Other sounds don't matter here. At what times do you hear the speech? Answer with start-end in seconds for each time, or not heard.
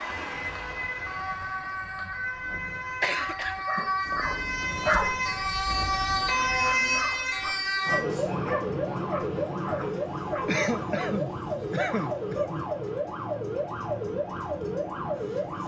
not heard.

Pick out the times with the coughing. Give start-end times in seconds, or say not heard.
3.0-4.3, 10.4-12.7.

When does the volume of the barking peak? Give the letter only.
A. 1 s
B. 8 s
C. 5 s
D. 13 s
C.